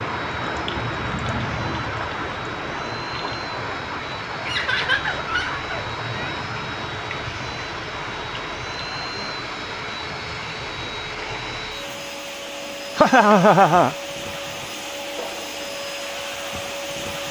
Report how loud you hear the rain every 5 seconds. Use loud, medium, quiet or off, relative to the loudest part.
loud, loud, medium, off.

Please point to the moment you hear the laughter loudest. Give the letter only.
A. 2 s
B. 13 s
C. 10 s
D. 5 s
B.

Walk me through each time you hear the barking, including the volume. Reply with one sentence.
You can't hear the barking here.